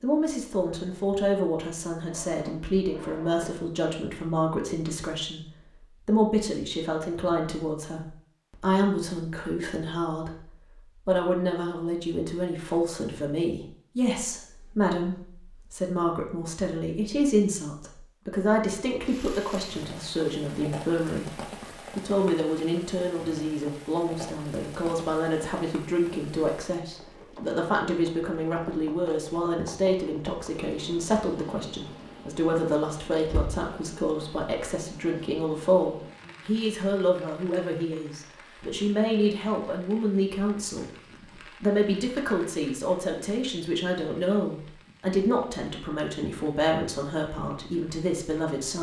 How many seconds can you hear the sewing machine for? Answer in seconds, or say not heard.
not heard.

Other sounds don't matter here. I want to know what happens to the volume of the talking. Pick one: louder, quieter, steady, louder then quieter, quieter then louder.
steady.